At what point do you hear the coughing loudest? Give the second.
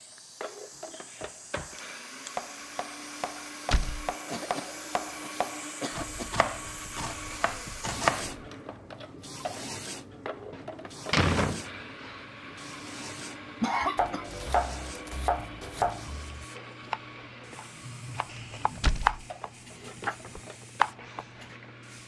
14 s.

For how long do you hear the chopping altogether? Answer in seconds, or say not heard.
14 s.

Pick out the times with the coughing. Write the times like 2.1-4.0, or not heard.
4.2-6.3, 13.2-14.2.